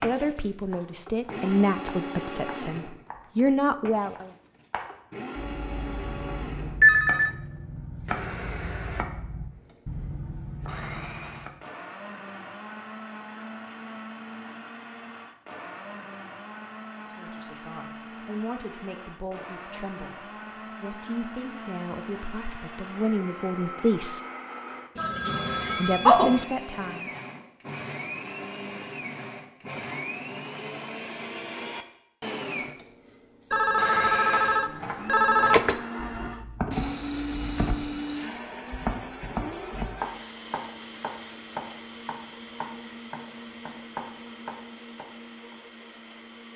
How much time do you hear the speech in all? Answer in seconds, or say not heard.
13 s.